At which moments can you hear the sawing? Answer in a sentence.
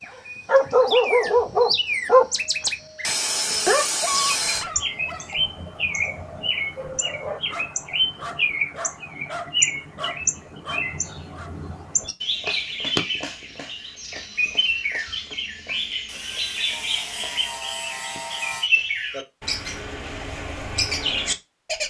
The sawing can be heard from 3.0 to 4.7 s and from 16.1 to 18.7 s.